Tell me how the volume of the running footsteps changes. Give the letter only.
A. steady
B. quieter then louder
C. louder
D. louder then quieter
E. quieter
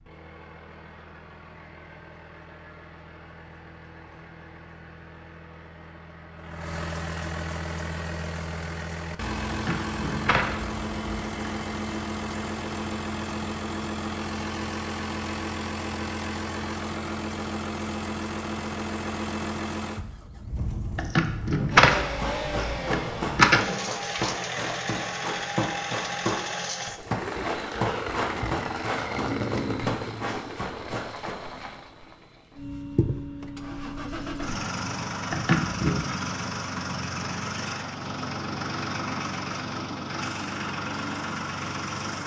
A.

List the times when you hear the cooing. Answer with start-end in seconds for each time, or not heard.
not heard.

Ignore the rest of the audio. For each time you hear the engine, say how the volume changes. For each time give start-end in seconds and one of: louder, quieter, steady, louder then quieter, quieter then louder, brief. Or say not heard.
0.0-42.2 louder.